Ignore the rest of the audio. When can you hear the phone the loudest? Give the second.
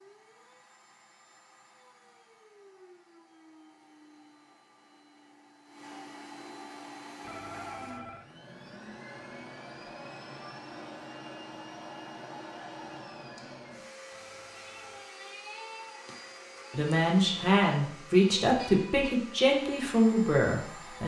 8 s.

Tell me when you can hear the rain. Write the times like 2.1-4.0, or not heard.
not heard.